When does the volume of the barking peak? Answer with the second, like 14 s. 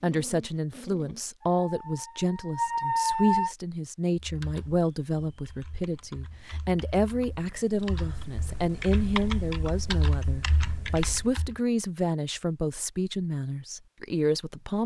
3 s.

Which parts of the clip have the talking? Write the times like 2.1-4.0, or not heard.
0.0-14.8.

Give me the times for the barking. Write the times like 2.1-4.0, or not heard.
0.0-3.5.